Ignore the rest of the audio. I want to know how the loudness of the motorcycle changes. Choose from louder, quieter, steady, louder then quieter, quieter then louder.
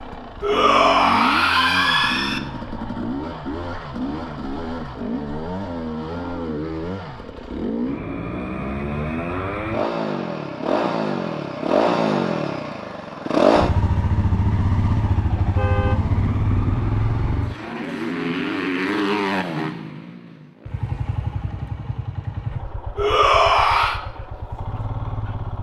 louder then quieter.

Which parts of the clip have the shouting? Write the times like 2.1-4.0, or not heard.
0.4-2.4, 22.9-24.0.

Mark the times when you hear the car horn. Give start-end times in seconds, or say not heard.
15.3-16.0.